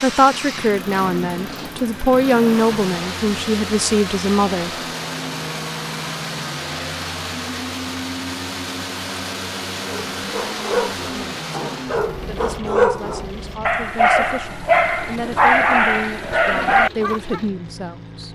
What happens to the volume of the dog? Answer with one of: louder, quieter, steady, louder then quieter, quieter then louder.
louder.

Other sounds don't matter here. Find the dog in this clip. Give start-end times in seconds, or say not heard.
9.8-17.4.